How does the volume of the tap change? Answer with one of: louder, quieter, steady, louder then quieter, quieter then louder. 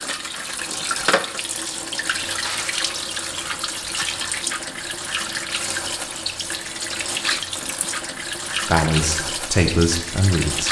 steady.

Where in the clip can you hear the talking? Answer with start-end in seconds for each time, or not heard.
8.7-10.6.